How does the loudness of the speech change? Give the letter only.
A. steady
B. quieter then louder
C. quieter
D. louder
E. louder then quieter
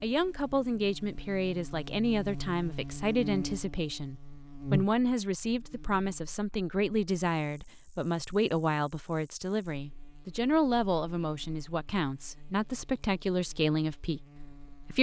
A.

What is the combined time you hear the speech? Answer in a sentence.
The speech can be heard for 15 seconds in total.